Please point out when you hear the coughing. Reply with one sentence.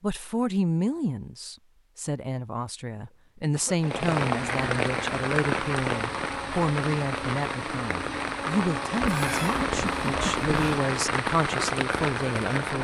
The coughing can be heard from 3.0 to 3.9 s and from 9.0 to 10.8 s.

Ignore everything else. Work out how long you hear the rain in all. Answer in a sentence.
You can hear the rain for 9 seconds altogether.